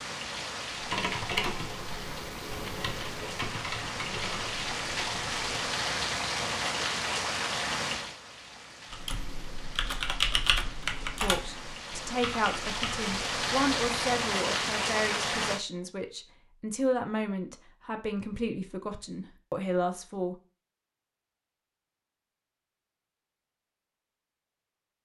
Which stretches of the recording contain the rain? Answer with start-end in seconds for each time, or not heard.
0.0-15.7.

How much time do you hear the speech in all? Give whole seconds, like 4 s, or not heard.
9 s.